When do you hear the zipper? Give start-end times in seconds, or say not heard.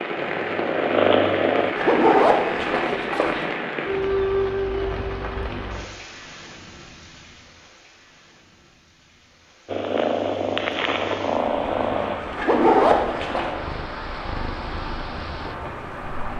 1.8-3.5, 12.3-13.6.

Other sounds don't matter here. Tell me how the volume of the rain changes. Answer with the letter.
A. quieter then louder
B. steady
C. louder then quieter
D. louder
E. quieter
A.